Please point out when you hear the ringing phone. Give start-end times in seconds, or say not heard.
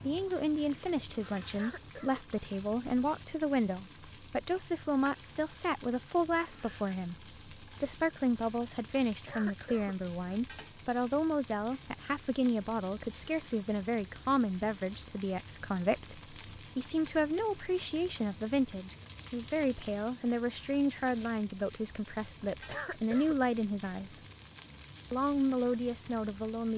not heard.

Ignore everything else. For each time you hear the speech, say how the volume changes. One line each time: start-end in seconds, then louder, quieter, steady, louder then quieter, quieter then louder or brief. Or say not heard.
0.0-24.2 steady
25.1-26.7 brief.